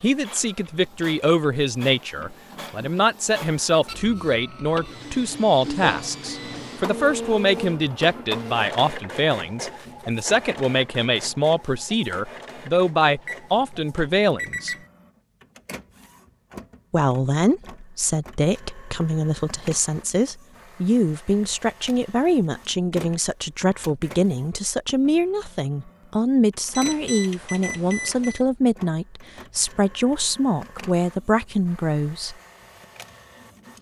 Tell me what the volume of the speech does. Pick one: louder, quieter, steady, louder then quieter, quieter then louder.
steady.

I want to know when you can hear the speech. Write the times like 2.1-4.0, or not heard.
0.0-14.8, 16.9-32.4.